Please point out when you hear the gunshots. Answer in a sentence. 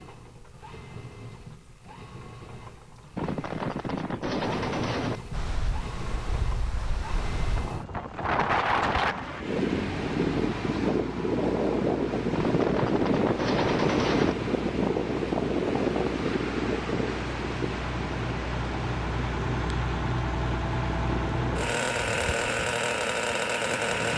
You can hear the gunshots from 3.1 to 5.2 s and from 12.3 to 14.3 s.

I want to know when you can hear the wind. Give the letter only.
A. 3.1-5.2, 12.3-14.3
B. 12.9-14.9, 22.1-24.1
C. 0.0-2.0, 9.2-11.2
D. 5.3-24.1
D.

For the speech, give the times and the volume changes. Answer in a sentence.
The speech can't be heard in this clip.